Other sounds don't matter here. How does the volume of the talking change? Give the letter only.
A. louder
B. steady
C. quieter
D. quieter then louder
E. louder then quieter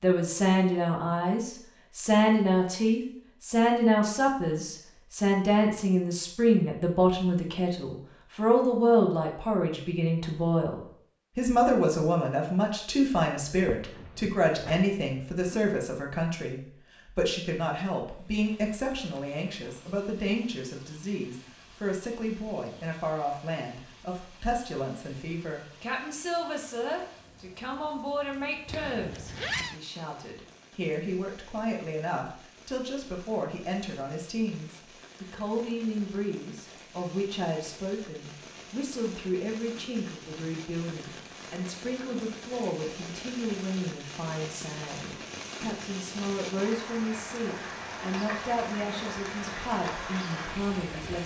C.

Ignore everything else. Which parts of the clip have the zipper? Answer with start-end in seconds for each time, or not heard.
13.8-15.6, 28.6-29.8.